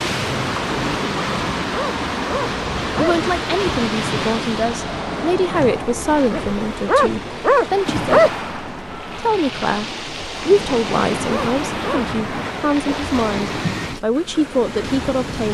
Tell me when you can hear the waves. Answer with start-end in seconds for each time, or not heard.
0.0-15.4.